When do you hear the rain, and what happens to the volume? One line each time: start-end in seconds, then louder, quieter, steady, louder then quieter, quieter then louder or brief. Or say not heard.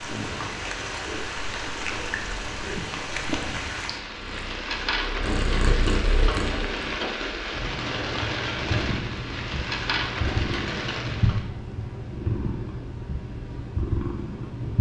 0.0-11.5 steady.